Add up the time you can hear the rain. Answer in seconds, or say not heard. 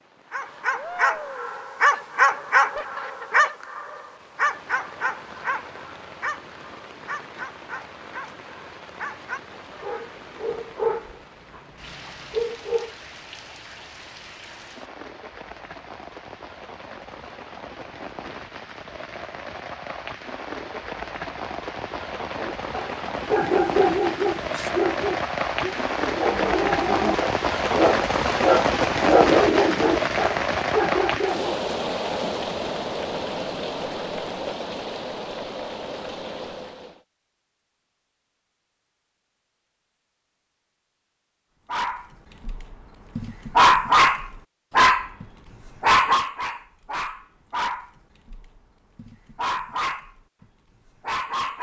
37 s.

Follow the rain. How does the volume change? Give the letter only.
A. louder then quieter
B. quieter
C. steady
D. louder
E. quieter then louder
D.